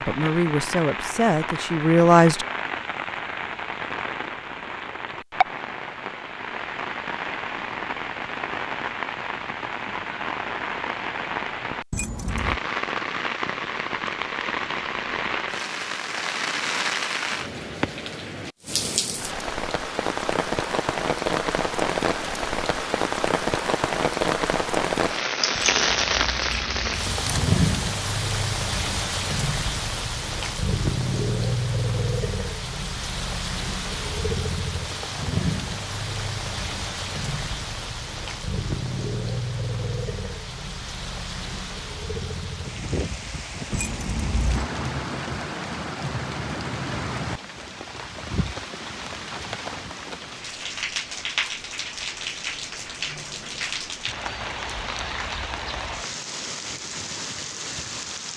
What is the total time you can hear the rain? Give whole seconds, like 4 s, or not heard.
58 s.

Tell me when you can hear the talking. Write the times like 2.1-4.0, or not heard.
0.0-2.5.